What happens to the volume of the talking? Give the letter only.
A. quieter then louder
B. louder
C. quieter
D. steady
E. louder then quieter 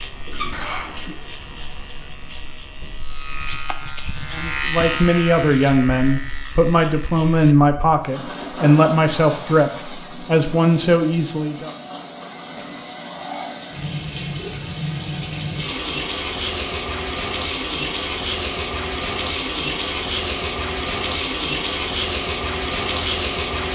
D.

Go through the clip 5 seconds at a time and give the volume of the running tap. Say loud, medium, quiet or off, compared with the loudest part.
quiet, medium, medium, loud, loud.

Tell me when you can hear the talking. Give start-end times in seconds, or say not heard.
4.3-11.7.